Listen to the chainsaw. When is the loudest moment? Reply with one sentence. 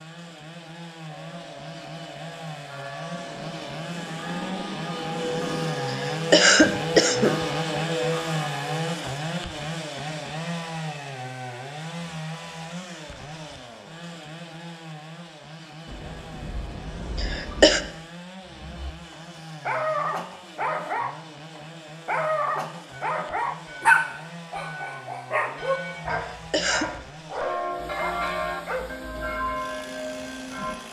The loudest moment of the chainsaw is at 8 seconds.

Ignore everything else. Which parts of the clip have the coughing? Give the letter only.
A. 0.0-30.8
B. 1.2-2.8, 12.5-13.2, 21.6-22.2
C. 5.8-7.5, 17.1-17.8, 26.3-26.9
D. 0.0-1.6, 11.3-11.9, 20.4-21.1
C.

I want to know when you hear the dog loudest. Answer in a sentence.
The volume of the dog peaks at 24 seconds.